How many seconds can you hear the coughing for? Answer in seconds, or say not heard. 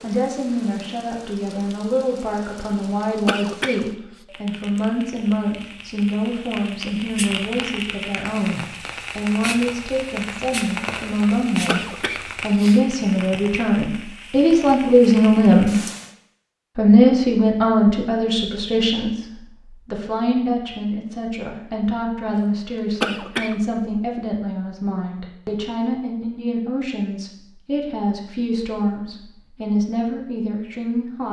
2 s.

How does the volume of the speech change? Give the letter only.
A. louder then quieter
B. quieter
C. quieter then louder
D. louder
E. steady
A.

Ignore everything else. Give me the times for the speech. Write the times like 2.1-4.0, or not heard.
0.0-15.8, 16.8-31.2.